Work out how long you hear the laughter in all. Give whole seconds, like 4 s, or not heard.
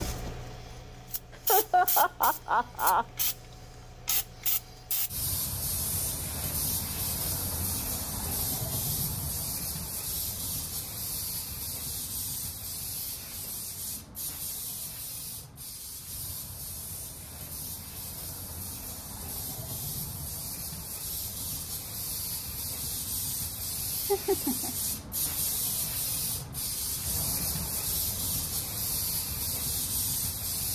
2 s.